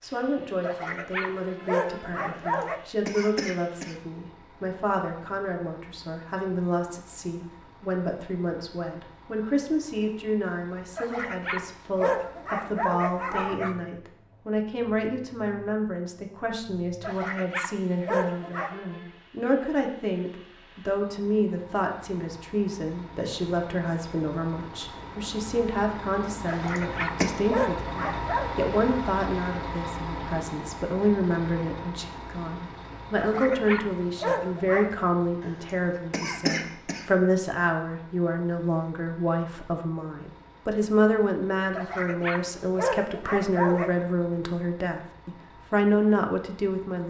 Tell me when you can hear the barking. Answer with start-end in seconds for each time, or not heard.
0.6-2.8, 10.9-13.8, 17.0-18.8, 26.4-28.5, 33.1-35.0, 41.8-44.0.